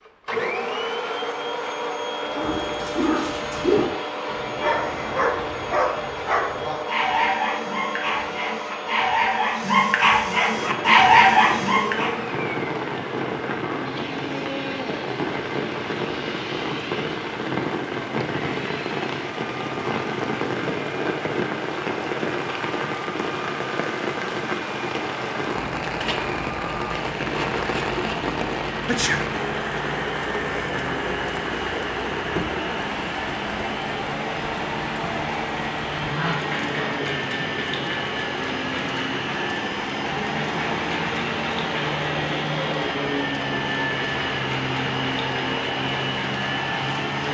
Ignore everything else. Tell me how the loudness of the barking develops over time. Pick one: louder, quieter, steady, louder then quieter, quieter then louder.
louder.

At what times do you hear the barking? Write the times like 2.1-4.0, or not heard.
2.3-12.2.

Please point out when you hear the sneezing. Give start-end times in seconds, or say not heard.
28.9-29.4.